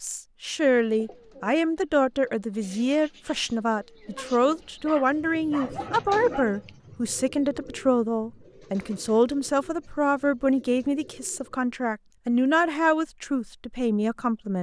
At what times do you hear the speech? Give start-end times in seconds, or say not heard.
0.0-14.5.